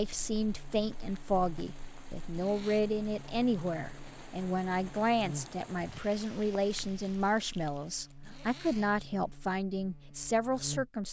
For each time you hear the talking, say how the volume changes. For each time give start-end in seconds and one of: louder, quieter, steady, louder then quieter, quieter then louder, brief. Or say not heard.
0.0-11.0 steady.